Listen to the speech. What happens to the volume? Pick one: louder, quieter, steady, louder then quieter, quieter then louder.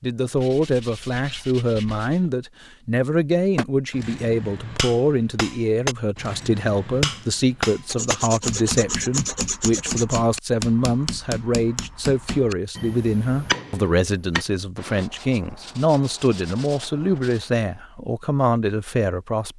steady.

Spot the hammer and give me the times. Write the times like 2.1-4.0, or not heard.
3.5-14.4.